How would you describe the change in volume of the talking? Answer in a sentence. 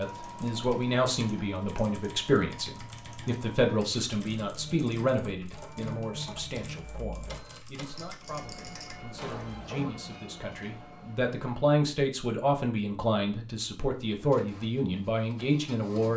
The loudness of the talking goes down, then up.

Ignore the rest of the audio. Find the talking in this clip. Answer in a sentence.
The talking can be heard from 0.0 to 16.1 s.